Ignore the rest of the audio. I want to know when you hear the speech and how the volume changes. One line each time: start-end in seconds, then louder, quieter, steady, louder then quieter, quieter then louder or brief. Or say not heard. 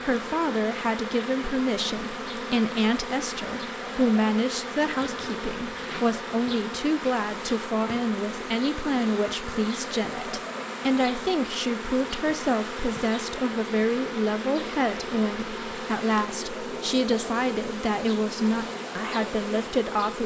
0.0-20.2 steady.